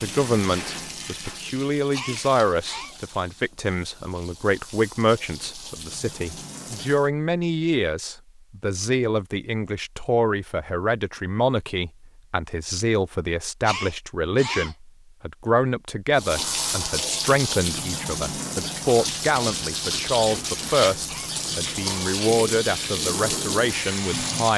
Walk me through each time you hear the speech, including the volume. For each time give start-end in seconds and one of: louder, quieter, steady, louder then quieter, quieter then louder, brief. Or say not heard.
0.0-24.5 steady.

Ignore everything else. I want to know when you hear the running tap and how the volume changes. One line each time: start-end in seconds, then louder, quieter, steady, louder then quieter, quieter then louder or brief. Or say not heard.
0.0-7.1 quieter then louder
16.1-24.5 steady.